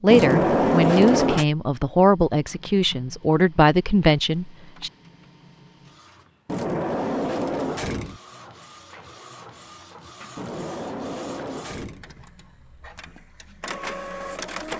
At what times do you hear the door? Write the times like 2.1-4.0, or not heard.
0.1-1.4, 6.5-8.2, 10.3-12.1.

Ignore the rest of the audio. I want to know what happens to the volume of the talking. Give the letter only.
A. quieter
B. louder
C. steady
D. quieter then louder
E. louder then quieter
C.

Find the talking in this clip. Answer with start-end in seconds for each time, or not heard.
0.0-4.9.